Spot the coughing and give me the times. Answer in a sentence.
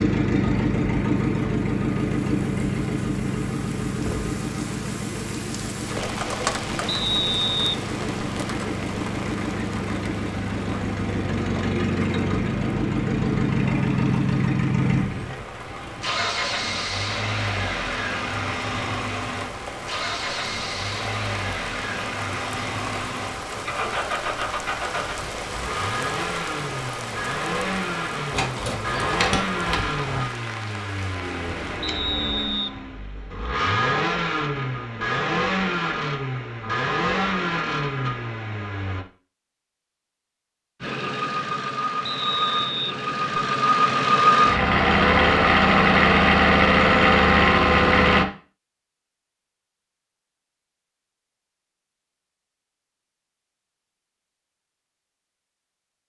The coughing can't be heard in this clip.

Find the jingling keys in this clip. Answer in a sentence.
The jingling keys can be heard from 28.3 to 30.2 s.